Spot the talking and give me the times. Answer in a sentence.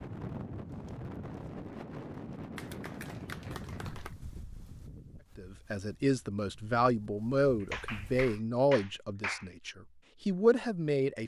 You can hear the talking from 5.3 to 11.2 s.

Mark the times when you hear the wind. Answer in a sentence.
The wind can be heard from 0.0 to 8.3 s.